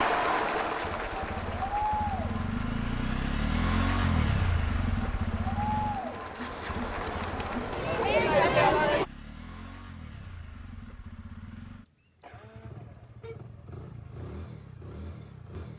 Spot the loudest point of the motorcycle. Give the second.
4 s.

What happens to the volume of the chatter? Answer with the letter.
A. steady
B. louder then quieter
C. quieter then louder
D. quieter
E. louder
C.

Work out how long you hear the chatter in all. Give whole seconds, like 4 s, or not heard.
9 s.